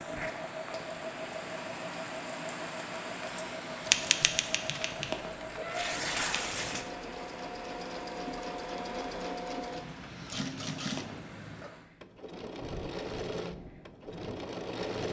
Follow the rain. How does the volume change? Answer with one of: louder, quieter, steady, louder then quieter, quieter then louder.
quieter.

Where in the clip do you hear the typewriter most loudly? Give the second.
4 s.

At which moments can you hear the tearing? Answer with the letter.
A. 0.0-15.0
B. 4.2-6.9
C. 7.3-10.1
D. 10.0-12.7
B.